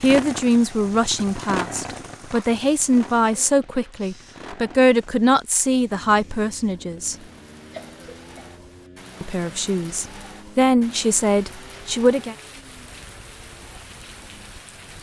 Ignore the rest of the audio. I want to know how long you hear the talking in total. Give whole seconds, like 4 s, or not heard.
10 s.